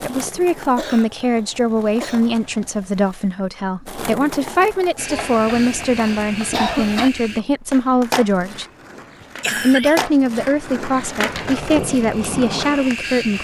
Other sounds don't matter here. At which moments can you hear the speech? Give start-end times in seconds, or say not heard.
0.0-8.7, 9.6-13.3.